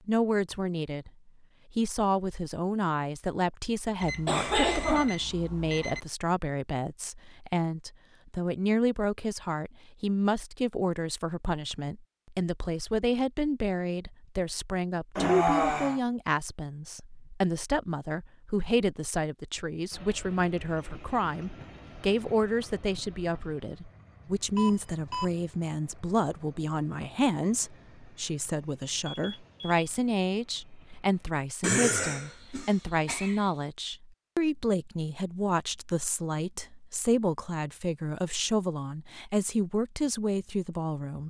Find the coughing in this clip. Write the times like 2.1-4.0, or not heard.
4.2-5.1, 15.2-16.0, 31.6-33.4.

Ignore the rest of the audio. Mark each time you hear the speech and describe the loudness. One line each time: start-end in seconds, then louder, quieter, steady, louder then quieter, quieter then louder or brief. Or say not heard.
0.1-41.2 steady.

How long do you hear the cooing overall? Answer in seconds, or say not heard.
not heard.